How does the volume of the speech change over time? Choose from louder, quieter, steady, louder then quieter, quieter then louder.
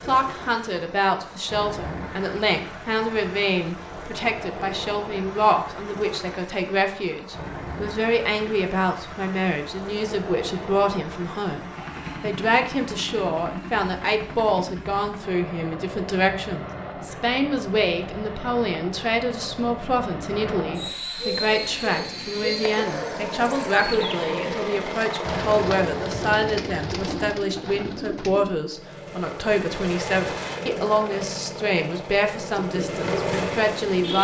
steady.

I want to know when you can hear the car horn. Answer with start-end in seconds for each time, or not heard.
not heard.